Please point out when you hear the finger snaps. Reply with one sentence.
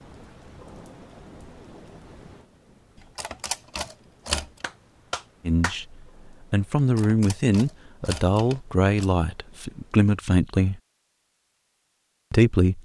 The finger snaps can be heard from 4.6 to 5.8 s.